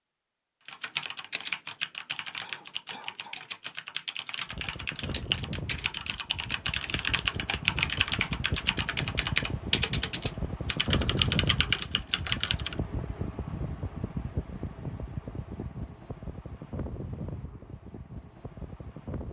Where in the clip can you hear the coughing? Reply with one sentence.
You can hear the coughing from 2.4 to 3.5 s.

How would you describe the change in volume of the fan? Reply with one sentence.
The loudness of the fan goes up, then down.